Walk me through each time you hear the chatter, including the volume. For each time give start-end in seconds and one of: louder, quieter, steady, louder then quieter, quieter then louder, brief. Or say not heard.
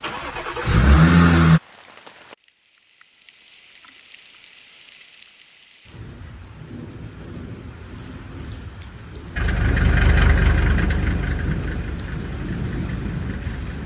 not heard.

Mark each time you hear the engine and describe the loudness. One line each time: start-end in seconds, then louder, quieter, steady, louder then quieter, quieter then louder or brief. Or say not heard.
0.0-1.6 brief
9.3-13.8 quieter.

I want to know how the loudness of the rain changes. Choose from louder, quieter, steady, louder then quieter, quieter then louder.
louder.